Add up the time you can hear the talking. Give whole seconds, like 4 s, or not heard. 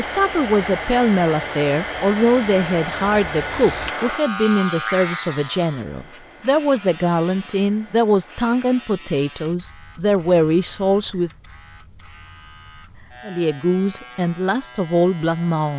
14 s.